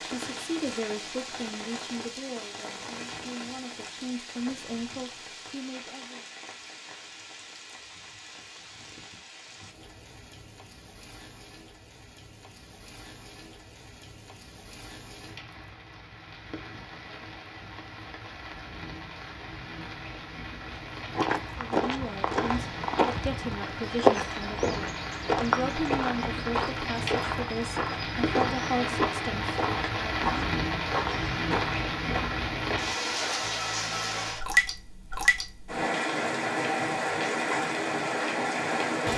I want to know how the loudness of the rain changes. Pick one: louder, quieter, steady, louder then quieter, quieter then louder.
quieter then louder.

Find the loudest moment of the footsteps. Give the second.
24 s.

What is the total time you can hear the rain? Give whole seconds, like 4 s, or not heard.
39 s.